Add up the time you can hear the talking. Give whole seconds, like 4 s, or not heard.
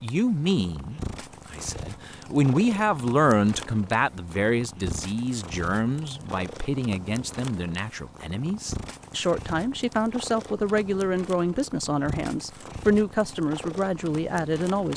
15 s.